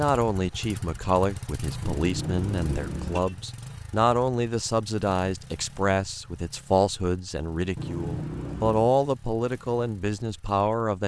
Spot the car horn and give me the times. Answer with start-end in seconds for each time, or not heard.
1.8-3.4, 7.8-8.9.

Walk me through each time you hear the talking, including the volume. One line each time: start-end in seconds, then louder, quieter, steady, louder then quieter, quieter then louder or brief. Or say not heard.
0.0-11.0 steady.